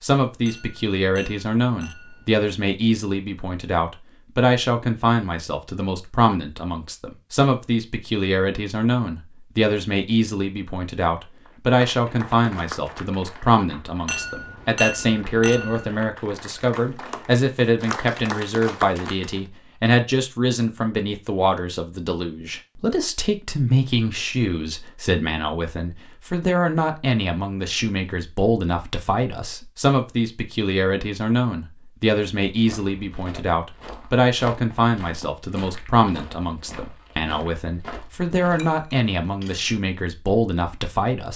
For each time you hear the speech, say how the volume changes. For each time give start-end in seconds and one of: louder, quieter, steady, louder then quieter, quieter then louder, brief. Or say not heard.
0.0-41.3 steady.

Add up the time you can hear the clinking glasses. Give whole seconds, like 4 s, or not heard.
5 s.